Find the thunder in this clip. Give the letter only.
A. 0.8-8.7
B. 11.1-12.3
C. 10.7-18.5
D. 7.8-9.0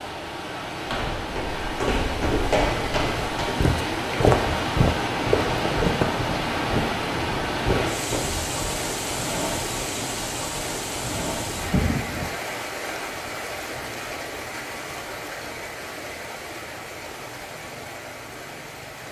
B.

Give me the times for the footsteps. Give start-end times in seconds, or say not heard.
0.8-8.7.